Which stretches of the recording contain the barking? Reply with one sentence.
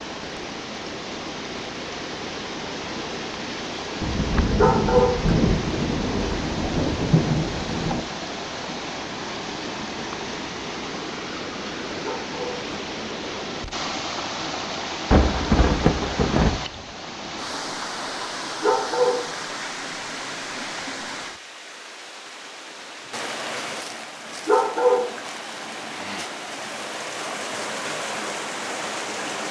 You can hear the barking from 4.5 to 5.3 s, from 12.0 to 12.7 s, from 18.6 to 19.4 s and from 24.4 to 25.2 s.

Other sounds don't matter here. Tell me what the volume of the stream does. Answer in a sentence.
The volume of the stream stays about the same.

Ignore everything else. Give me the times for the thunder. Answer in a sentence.
You can hear the thunder from 4.0 to 8.0 s and from 15.1 to 16.6 s.